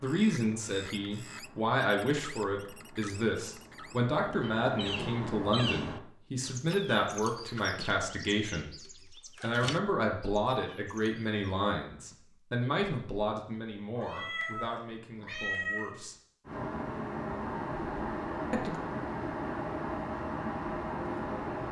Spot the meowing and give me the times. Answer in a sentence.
You can hear the meowing from 13.9 to 15.9 s.